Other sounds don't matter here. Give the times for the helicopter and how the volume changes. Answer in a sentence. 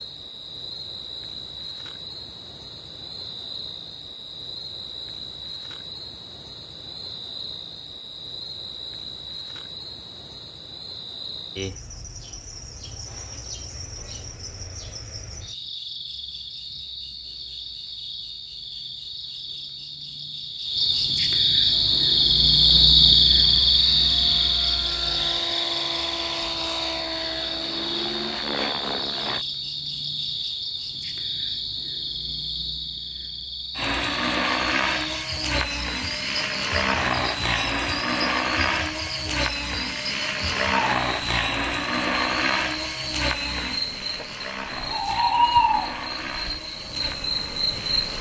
The helicopter can be heard from 21.6 to 29.4 s, getting louder; and from 33.8 to 48.1 s, getting quieter.